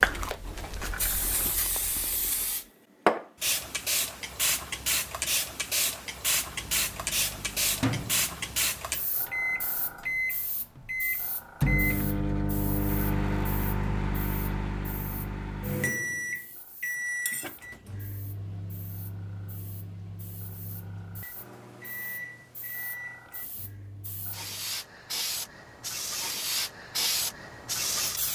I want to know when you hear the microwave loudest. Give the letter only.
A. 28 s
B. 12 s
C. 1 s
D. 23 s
B.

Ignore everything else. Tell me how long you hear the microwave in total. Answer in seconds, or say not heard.
18 s.